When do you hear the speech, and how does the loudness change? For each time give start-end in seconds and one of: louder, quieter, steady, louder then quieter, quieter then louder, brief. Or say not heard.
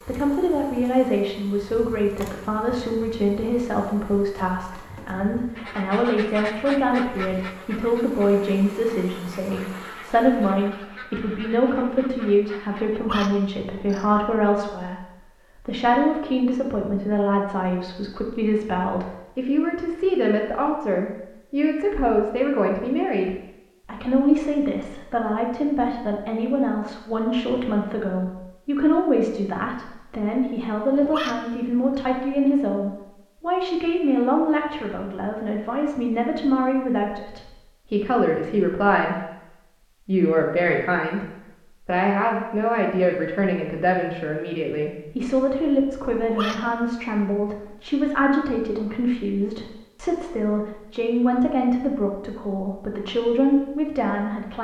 0.0-54.6 steady.